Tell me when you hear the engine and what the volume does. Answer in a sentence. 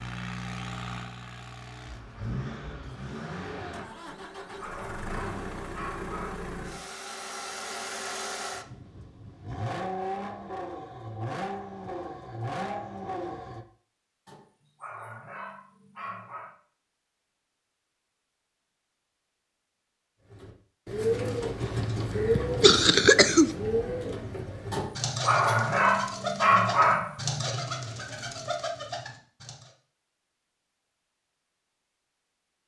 The engine can be heard from 0.0 to 13.7 s, at a steady volume.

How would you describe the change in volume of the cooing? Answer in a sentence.
The loudness of the cooing goes down.